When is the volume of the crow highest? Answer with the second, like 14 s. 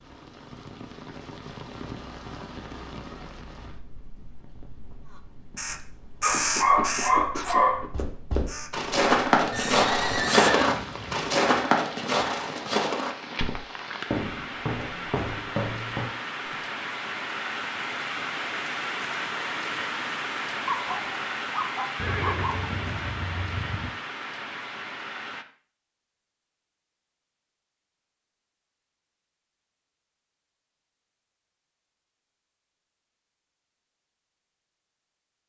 6 s.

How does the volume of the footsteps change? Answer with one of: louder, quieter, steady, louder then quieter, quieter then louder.
quieter.